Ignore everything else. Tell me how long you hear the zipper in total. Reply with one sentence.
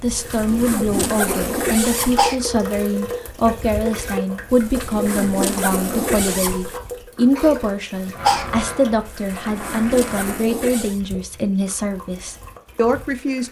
The zipper can be heard for 6 seconds in total.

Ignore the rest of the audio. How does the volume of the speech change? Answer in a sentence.
The loudness of the speech stays about the same.